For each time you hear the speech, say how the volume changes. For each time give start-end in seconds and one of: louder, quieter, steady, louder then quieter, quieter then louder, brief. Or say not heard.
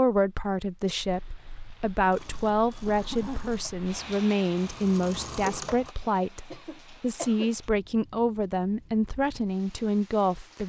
0.0-10.6 steady.